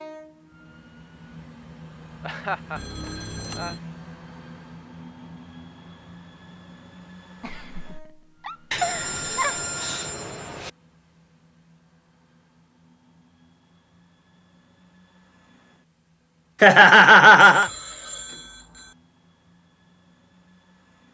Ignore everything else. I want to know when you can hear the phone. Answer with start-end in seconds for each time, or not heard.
2.8-3.8, 8.7-10.7, 17.4-18.9.